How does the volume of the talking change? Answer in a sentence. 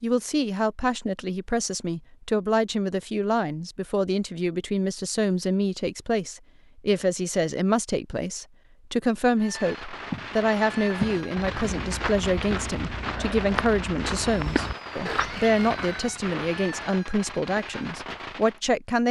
The volume of the talking stays about the same.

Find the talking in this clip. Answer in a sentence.
The talking can be heard from 0.0 to 19.0 s.